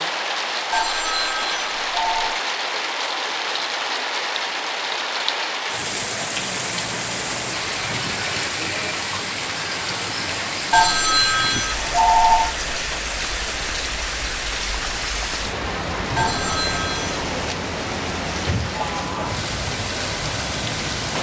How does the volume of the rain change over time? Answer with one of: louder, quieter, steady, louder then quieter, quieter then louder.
steady.